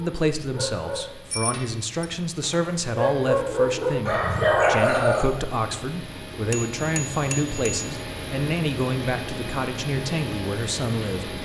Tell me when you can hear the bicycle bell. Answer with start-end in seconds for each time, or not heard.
1.3-2.0, 6.5-8.0.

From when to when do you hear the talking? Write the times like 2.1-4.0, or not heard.
0.0-11.4.